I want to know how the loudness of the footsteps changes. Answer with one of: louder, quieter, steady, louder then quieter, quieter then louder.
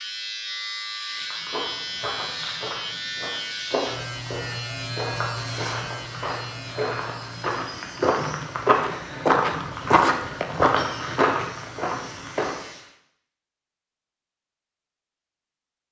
louder.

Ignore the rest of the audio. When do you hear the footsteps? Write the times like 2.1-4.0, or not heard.
1.3-12.6.